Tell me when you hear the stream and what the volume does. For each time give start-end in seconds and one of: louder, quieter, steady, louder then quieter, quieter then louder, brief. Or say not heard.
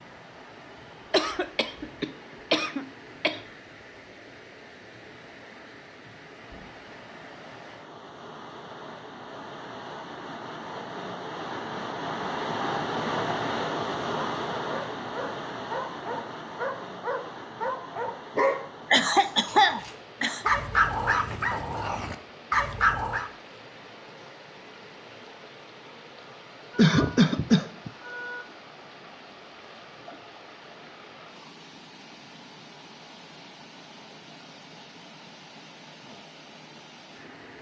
0.0-37.5 louder then quieter.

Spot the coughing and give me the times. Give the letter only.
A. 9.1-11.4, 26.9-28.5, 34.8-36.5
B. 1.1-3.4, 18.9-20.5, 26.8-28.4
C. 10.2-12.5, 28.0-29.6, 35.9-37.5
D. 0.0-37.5
B.